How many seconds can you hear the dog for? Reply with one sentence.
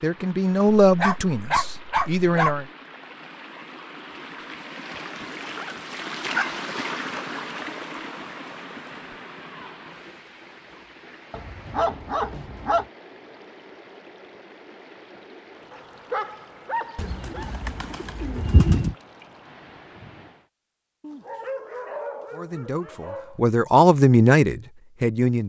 The dog can be heard for 9 seconds in total.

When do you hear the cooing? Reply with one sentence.
You can hear the cooing from 16.9 to 18.9 s.